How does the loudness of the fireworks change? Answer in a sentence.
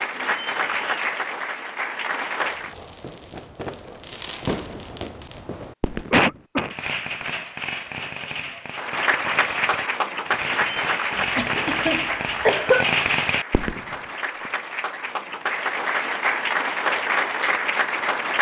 The loudness of the fireworks goes up.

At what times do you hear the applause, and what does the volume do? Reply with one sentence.
The applause can be heard briefly from 0.0 to 2.8 s; and from 8.7 to 18.3 s, getting quieter then louder.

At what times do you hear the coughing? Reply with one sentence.
The coughing can be heard from 6.1 to 6.8 s and from 11.2 to 12.8 s.